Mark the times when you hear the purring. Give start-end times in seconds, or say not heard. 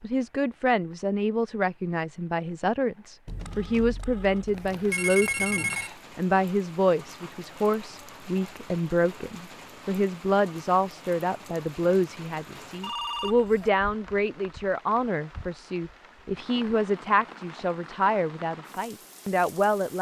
not heard.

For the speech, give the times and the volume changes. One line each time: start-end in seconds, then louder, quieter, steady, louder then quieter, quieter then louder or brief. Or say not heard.
0.0-19.9 steady.